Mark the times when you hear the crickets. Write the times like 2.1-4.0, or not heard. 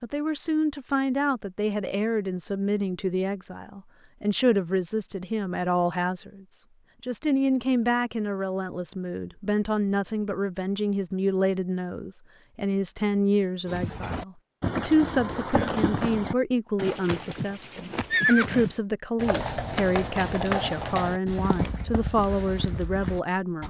not heard.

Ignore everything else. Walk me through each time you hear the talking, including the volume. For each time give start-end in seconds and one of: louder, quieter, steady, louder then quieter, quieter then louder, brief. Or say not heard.
0.0-23.6 steady.